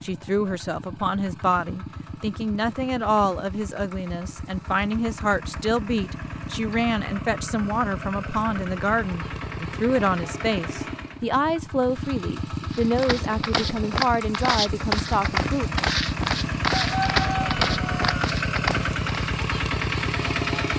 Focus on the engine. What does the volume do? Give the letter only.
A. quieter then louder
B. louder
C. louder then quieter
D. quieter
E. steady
B.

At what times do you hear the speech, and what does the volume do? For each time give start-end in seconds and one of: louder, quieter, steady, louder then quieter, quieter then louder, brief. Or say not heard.
0.0-15.7 steady.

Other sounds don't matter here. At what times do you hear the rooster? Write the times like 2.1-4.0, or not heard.
16.7-18.1.